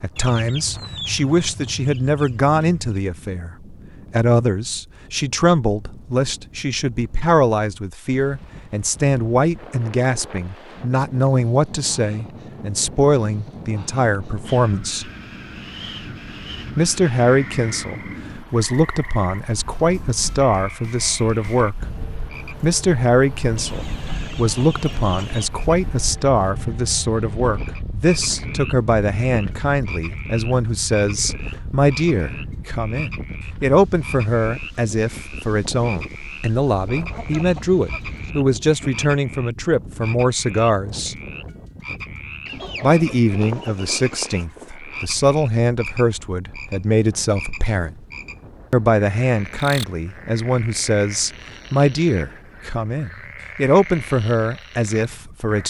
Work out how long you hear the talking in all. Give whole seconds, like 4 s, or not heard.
51 s.